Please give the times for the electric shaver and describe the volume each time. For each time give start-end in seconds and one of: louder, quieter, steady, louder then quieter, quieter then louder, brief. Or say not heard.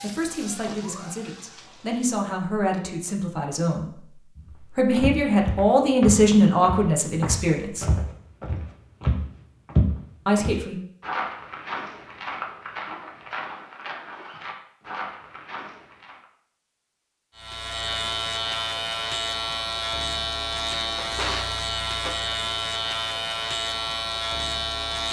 17.4-25.0 steady.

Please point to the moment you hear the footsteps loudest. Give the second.
10 s.